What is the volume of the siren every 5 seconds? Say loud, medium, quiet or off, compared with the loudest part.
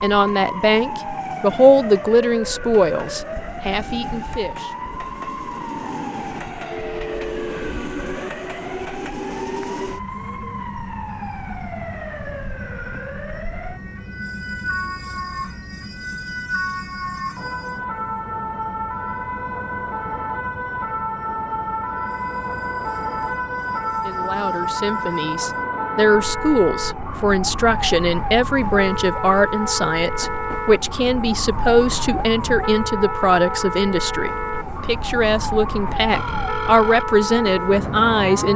medium, medium, medium, loud, loud, loud, loud, loud.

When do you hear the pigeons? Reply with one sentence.
You can't hear the pigeons here.